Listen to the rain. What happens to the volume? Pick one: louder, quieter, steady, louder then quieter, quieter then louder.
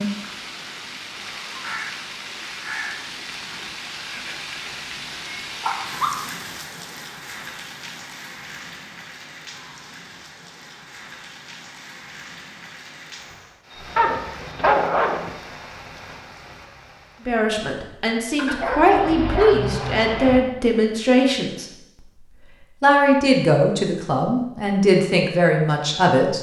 quieter.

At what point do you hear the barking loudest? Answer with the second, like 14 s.
15 s.